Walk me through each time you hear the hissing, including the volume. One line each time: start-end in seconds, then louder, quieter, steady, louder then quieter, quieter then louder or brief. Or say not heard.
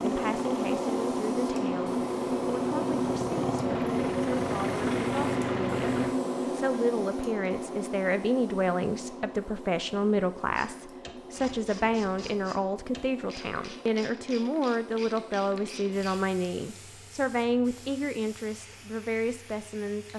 0.0-20.1 quieter.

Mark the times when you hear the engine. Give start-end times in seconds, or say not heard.
0.0-6.2.